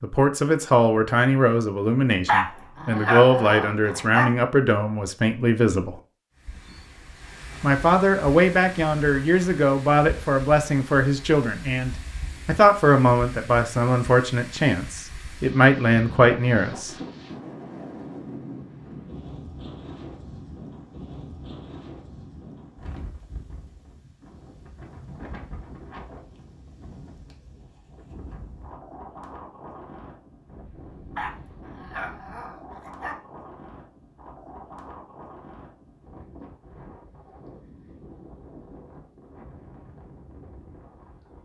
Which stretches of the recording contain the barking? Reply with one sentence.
The barking can be heard from 2.2 to 4.2 s and from 31.1 to 33.1 s.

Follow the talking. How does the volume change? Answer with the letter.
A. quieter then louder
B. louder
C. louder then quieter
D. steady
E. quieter
D.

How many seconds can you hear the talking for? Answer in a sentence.
The talking can be heard for 15 seconds in total.